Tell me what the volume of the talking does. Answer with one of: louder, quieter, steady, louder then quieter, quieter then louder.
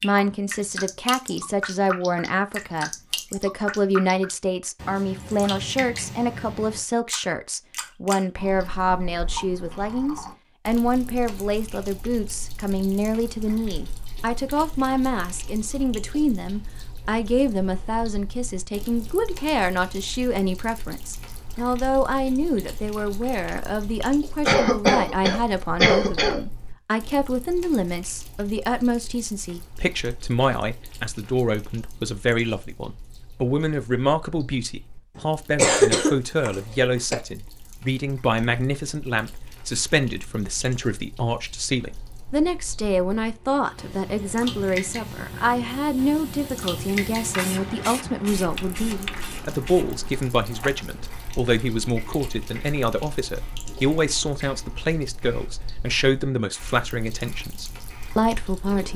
steady.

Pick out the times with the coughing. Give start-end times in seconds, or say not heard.
24.4-26.4, 35.1-37.1.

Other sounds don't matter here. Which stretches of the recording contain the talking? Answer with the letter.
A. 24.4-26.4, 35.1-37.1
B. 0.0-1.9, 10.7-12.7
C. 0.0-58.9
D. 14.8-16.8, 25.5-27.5
C.